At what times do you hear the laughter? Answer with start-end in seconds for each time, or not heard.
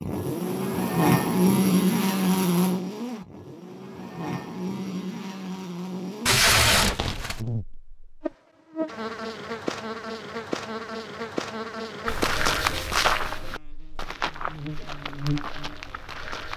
not heard.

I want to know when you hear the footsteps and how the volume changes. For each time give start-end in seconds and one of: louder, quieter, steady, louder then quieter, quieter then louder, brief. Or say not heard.
12.1-16.5 quieter.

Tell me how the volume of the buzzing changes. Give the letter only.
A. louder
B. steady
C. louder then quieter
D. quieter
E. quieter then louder
D.